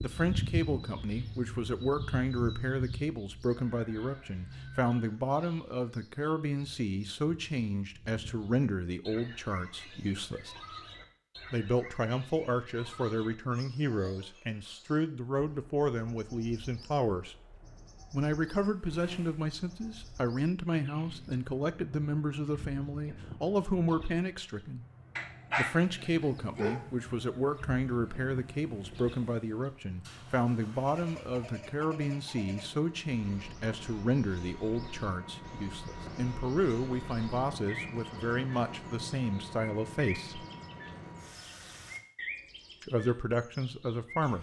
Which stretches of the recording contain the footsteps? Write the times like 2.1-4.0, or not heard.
not heard.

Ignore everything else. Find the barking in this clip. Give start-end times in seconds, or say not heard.
25.1-26.9.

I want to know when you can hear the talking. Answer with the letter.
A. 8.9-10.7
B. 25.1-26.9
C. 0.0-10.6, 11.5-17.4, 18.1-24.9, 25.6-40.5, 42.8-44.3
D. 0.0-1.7
C.